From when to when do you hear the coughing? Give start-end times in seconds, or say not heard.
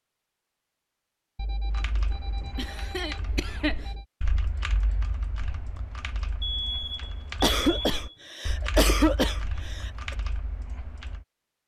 2.5-3.8, 7.4-10.2.